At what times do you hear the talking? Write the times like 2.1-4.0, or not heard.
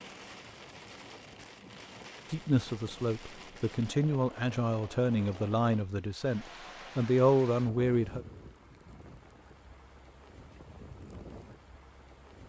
2.3-8.2.